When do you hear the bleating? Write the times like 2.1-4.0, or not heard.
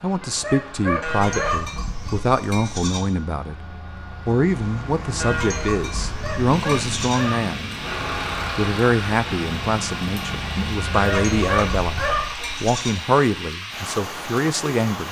1.0-3.0, 5.2-7.2, 10.9-12.9.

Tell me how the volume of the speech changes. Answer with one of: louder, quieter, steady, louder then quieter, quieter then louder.
steady.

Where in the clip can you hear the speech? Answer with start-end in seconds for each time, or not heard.
0.0-7.8, 8.6-15.0.